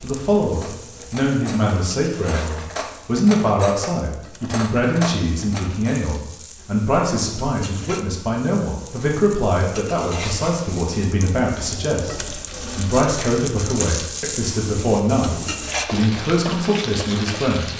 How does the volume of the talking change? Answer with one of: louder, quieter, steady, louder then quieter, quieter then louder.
steady.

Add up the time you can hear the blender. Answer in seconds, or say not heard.
not heard.